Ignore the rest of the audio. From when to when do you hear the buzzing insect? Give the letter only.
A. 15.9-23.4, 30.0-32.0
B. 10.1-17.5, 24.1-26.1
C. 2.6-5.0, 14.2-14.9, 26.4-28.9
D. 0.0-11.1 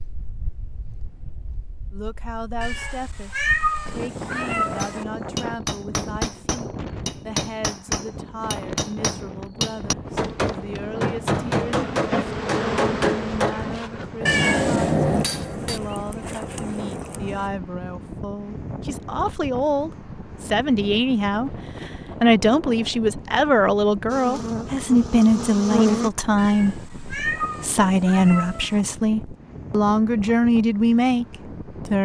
B.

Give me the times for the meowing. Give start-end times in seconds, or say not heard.
2.6-5.0, 14.2-14.9, 26.4-28.9.